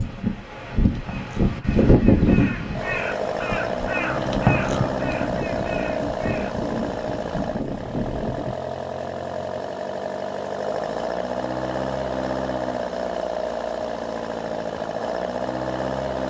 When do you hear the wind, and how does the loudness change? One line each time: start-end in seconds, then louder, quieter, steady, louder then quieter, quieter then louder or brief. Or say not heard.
0.0-8.6 quieter.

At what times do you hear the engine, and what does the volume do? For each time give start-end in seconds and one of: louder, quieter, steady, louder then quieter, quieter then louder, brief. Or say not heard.
2.7-16.2 steady.